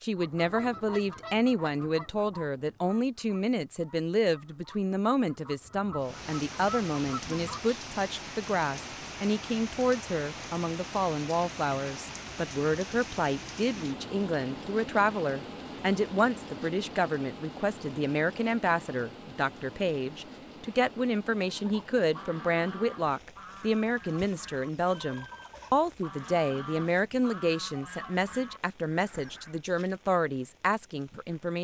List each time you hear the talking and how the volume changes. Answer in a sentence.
You can hear the talking from 0.0 to 31.5 s, at a steady volume.